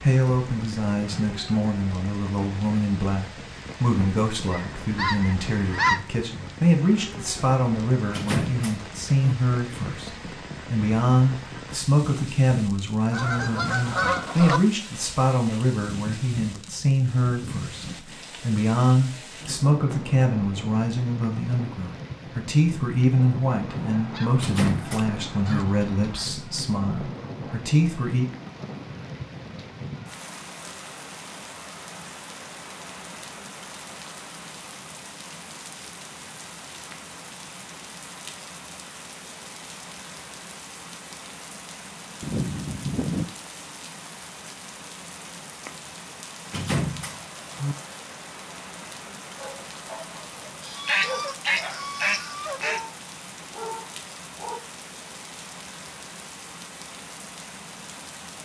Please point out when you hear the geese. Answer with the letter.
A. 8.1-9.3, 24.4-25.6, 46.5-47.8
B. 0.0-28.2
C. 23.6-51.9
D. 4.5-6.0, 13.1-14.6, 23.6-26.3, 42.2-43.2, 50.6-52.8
D.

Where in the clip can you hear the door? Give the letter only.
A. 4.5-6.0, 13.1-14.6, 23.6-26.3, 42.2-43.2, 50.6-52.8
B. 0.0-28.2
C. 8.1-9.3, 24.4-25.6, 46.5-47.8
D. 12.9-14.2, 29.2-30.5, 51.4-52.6
C.